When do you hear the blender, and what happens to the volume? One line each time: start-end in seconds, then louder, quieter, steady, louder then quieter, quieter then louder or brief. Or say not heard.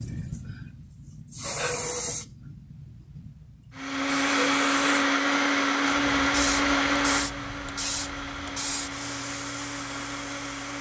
3.8-10.7 quieter.